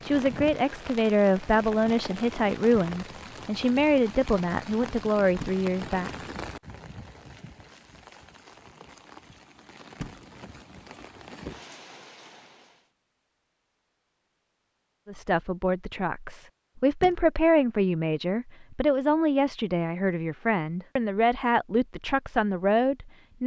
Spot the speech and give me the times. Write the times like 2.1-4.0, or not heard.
0.0-6.2, 15.1-23.4.